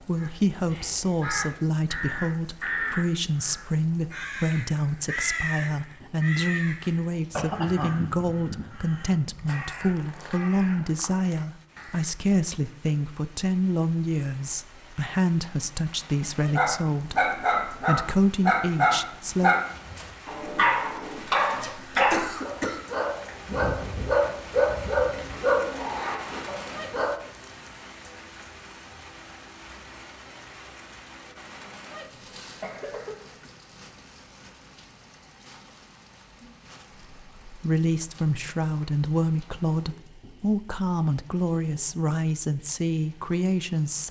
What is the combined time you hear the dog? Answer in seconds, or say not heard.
11 s.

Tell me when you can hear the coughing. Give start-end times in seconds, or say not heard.
7.3-8.0, 22.1-22.8, 32.4-33.5.